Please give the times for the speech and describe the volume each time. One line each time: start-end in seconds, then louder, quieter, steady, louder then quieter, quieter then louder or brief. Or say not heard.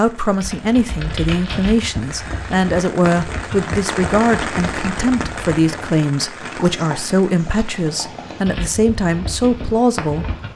0.0-10.2 steady.